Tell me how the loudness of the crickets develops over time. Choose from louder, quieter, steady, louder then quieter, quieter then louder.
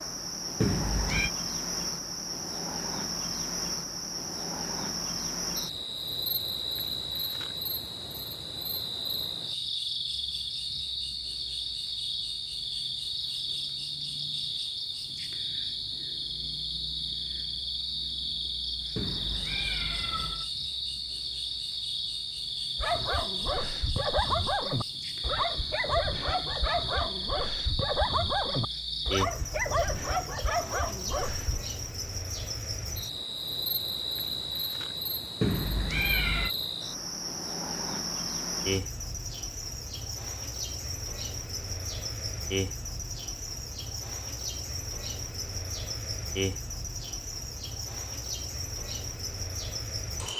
steady.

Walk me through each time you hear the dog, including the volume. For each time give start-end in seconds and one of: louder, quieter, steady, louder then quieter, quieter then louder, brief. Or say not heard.
22.8-31.6 steady.